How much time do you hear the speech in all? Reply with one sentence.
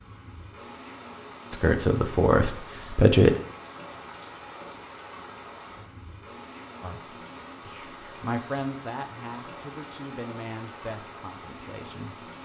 You can hear the speech for 7 seconds altogether.